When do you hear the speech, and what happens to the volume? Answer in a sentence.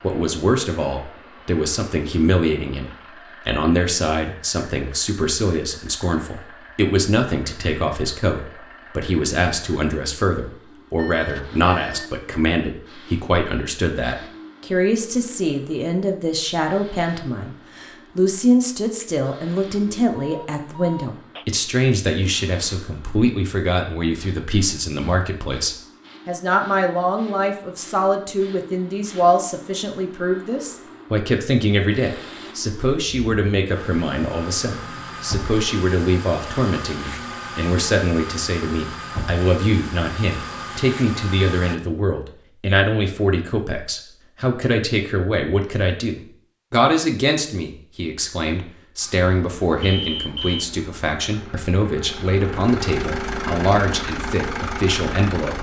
The speech can be heard from 0.0 to 55.5 s, at a steady volume.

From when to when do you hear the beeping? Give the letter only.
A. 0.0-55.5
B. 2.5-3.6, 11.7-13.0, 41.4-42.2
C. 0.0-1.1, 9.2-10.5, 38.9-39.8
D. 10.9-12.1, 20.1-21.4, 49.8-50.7
D.